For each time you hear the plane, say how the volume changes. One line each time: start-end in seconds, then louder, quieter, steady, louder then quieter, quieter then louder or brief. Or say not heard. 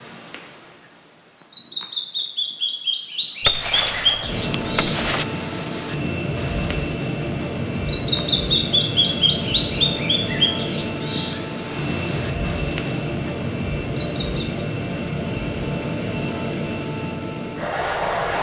4.2-18.3 steady.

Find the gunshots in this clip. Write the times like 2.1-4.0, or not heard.
3.4-5.2.